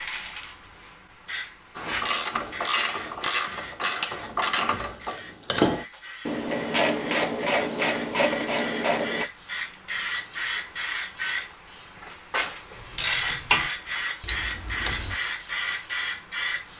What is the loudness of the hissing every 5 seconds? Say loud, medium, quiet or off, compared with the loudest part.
medium, medium, loud, loud.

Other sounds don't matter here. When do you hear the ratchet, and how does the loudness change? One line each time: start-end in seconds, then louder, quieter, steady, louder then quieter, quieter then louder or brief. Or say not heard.
1.8-9.2 steady
12.8-15.2 brief.